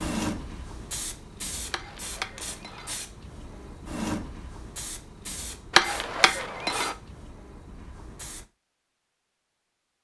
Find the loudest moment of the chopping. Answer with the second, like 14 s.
6 s.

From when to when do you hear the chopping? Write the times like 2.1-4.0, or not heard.
1.7-2.9, 5.7-7.0.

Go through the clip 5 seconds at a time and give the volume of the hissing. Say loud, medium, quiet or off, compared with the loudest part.
loud, medium.